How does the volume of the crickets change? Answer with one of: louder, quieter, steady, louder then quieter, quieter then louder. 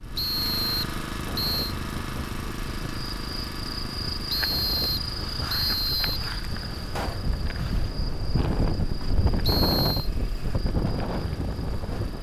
quieter.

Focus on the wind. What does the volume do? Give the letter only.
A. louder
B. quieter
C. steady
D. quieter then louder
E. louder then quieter
A.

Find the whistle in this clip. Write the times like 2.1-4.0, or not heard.
0.1-1.8, 4.3-6.2, 9.4-10.1.